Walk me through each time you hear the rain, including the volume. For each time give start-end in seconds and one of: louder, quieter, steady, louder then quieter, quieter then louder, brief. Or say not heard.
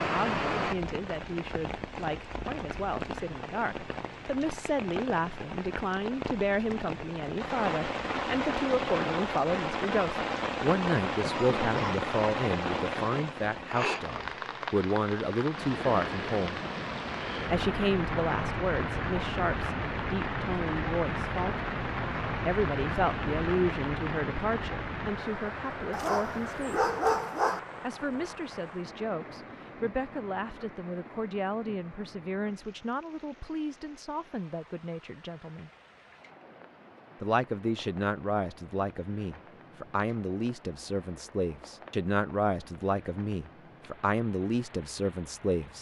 0.0-45.7 quieter.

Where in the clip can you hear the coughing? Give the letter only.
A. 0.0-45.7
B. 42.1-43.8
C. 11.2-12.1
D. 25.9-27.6
C.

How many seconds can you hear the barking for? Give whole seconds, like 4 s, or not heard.
2 s.